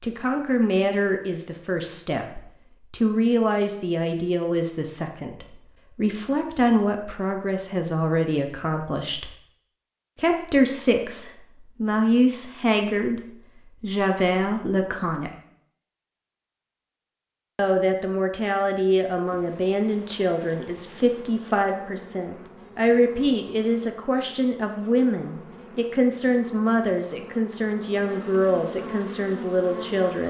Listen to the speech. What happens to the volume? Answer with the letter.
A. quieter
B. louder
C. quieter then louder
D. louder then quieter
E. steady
E.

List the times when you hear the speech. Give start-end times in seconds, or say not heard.
0.0-9.3, 10.2-15.3, 17.6-30.2.